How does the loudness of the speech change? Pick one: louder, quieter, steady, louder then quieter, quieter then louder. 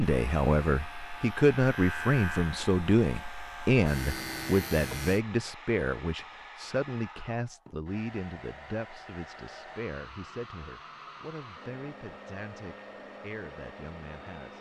quieter.